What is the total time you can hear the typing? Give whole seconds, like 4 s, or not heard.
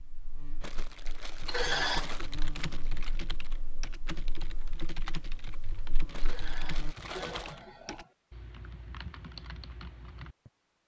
9 s.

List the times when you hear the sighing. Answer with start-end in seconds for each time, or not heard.
1.4-2.1, 6.2-8.1.